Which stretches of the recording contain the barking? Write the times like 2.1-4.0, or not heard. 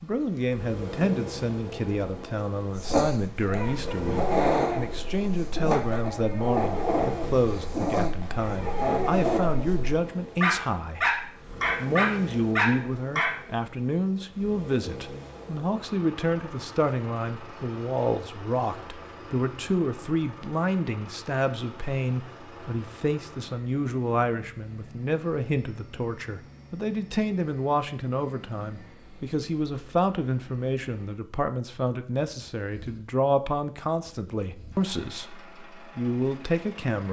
2.8-13.3.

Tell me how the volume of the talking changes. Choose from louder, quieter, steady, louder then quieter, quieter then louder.
steady.